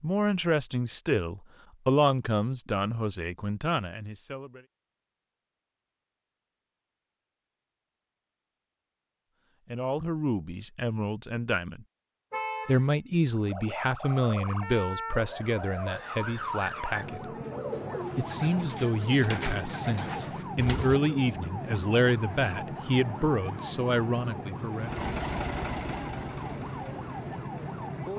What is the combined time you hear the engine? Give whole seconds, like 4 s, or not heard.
3 s.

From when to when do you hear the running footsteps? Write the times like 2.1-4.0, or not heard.
not heard.